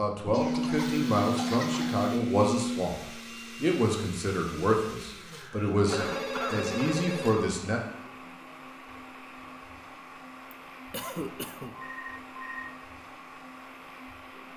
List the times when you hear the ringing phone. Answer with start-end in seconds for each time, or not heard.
0.2-2.9, 5.8-7.5, 11.7-12.7.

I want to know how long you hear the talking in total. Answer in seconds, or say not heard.
7 s.